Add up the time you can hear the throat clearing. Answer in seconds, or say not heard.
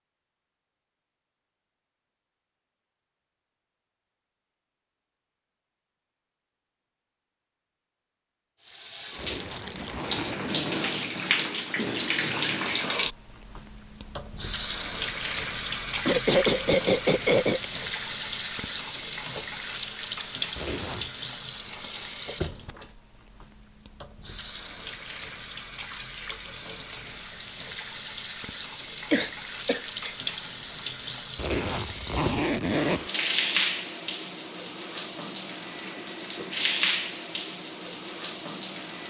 3 s.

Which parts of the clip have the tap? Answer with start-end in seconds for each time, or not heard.
8.6-39.0.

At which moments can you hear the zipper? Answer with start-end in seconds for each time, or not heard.
9.2-10.8, 20.6-21.1, 31.4-33.1.